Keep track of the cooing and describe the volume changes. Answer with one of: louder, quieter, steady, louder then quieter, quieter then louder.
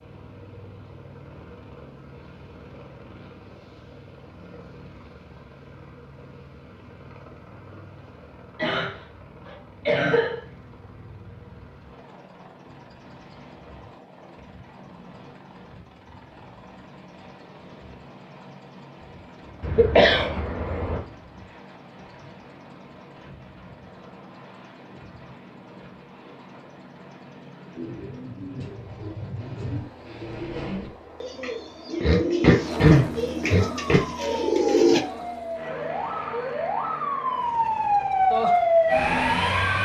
louder.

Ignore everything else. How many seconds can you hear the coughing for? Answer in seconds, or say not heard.
5 s.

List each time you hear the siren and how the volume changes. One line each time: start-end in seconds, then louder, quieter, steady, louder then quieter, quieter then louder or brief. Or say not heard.
33.5-39.8 louder.